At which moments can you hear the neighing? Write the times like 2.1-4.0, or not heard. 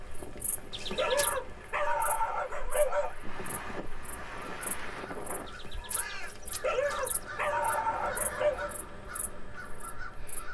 0.7-1.4, 5.5-7.3.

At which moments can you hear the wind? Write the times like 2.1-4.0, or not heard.
0.0-5.5.